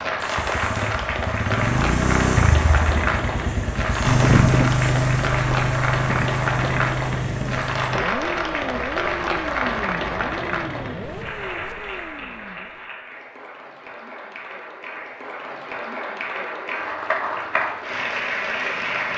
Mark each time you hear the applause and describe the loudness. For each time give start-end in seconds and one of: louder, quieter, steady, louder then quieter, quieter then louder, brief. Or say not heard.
0.0-19.1 quieter then louder.